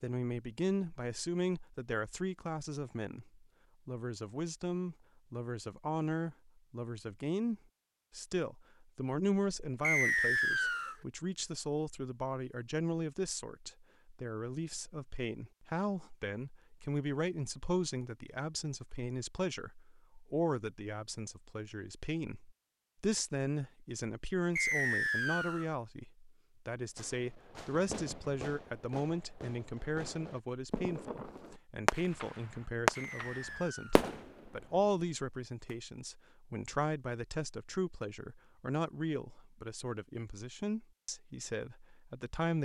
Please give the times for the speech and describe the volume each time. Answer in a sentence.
The speech can be heard from 0.0 to 42.6 s, at a steady volume.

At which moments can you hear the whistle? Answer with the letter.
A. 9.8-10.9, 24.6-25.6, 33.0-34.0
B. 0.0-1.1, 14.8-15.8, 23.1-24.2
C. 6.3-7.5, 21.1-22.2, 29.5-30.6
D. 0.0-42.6
A.